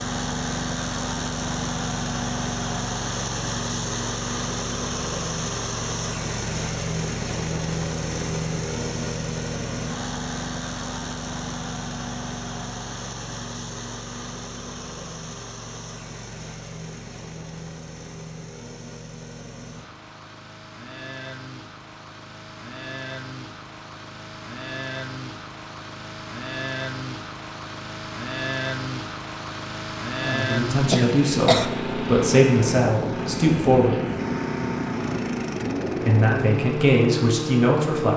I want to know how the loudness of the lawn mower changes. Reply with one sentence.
The loudness of the lawn mower goes down, then up.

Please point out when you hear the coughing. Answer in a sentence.
The coughing can be heard from 30.9 to 31.6 s.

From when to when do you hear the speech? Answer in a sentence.
You can hear the speech from 30.2 to 34.0 s and from 36.0 to 38.1 s.